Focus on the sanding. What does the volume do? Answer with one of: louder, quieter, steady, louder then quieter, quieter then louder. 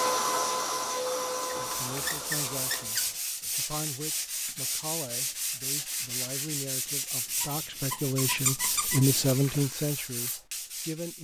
steady.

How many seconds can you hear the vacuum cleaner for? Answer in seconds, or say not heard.
3 s.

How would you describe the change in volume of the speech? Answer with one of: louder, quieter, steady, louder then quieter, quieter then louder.
louder.